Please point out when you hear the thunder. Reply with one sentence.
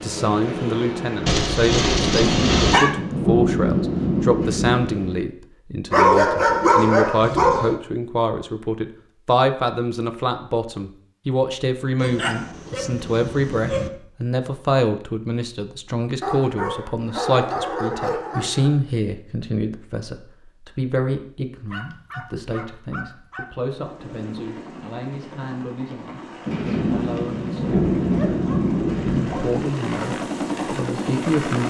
The thunder can be heard from 1.9 to 5.2 s and from 26.4 to 29.6 s.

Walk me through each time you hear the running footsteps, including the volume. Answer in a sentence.
You can't hear the running footsteps here.